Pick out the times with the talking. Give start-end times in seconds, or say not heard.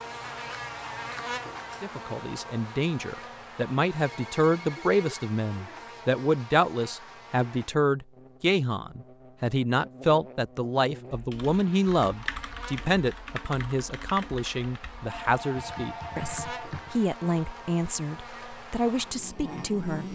1.8-20.1.